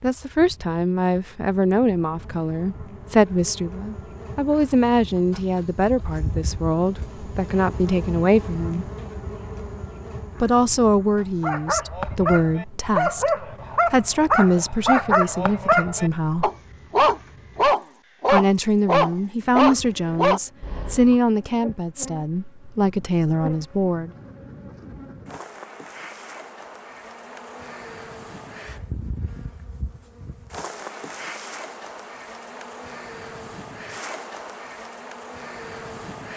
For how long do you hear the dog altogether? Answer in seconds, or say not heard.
10 s.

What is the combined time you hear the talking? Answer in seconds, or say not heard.
21 s.